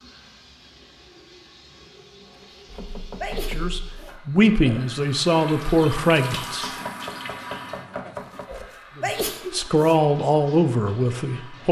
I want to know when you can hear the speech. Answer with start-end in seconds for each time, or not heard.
3.5-6.7, 8.9-11.6.